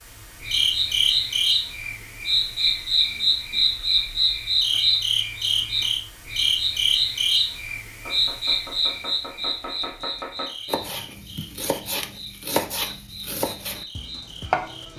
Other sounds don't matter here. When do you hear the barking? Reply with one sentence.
The barking can't be heard in this clip.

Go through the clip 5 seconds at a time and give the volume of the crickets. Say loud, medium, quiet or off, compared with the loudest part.
loud, loud, quiet.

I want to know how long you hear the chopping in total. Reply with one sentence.
You can hear the chopping for 7 seconds altogether.